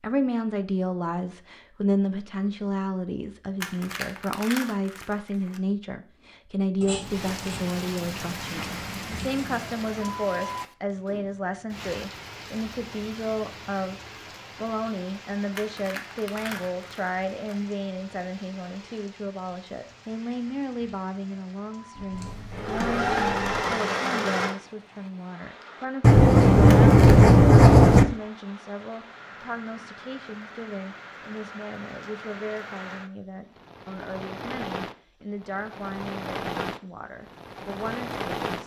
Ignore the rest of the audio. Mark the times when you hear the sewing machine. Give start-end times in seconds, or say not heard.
22.2-24.6.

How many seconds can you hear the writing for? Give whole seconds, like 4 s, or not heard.
7 s.